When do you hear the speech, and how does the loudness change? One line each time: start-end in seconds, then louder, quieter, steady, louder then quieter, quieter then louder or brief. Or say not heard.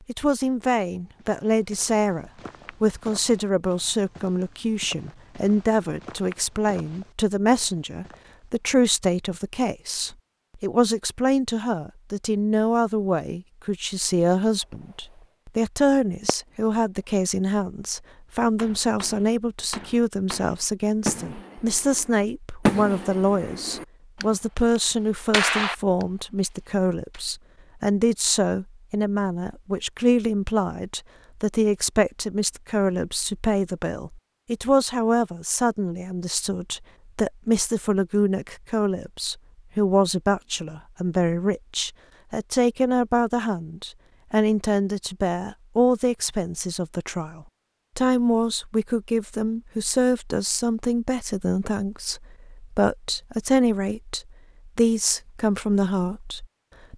0.1-56.9 steady.